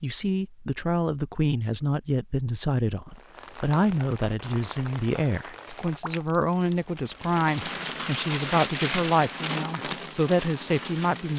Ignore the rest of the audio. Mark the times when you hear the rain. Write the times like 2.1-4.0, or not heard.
3.1-11.3.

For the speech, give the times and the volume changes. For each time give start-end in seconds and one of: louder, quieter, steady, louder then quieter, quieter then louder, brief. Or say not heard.
0.0-11.3 steady.